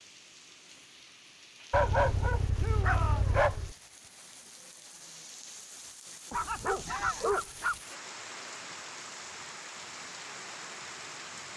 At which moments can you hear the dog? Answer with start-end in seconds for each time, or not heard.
1.7-3.8, 6.3-7.8.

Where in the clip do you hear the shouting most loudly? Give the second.
3 s.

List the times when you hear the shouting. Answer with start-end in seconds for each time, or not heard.
2.5-3.2, 6.8-7.4.